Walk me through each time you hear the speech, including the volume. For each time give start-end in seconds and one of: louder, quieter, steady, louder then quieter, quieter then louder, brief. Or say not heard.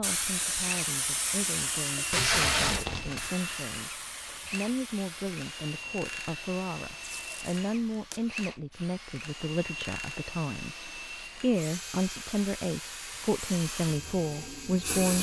0.0-15.1 louder.